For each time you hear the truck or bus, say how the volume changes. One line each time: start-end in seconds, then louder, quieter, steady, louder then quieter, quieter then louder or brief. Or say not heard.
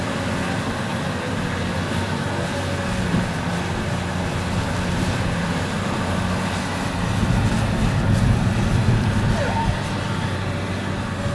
0.0-11.3 steady.